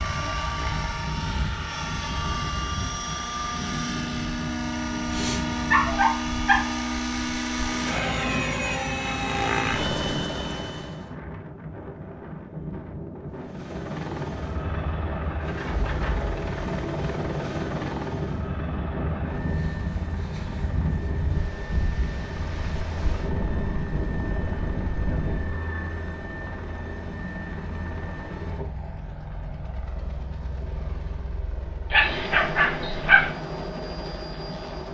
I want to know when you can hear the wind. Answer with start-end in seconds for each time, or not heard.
0.0-25.6.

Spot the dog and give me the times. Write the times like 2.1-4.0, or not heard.
5.7-6.7, 31.9-33.3.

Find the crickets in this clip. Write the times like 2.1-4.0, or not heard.
not heard.